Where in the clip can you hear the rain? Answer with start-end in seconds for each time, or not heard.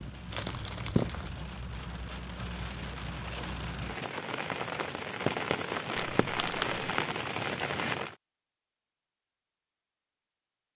0.0-8.2.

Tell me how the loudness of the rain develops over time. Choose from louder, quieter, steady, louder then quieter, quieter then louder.
louder.